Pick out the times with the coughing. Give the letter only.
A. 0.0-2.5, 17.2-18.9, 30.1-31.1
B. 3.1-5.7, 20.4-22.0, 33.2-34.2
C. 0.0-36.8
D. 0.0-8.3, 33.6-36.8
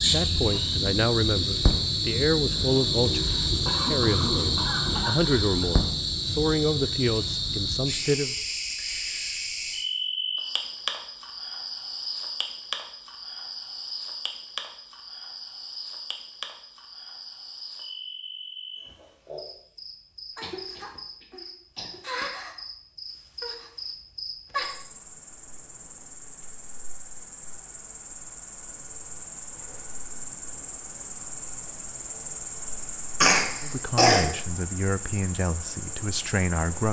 B.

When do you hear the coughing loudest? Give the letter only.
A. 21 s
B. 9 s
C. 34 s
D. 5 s
C.